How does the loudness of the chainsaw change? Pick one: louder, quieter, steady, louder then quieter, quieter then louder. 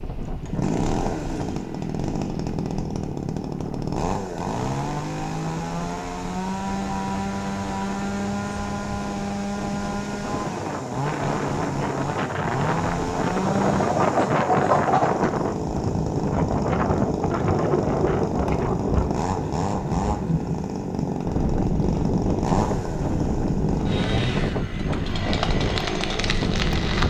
steady.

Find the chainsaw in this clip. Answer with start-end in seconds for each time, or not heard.
0.1-27.0.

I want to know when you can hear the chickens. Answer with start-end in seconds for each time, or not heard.
13.8-15.3.